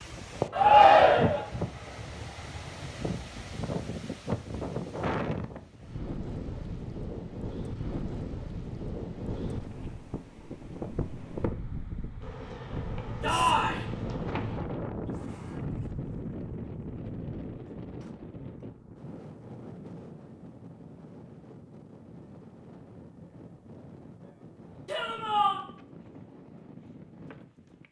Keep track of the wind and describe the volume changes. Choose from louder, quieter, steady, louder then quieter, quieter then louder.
quieter.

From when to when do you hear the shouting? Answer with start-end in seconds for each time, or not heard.
0.5-1.4, 13.2-13.8, 24.9-25.6.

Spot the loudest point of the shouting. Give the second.
1 s.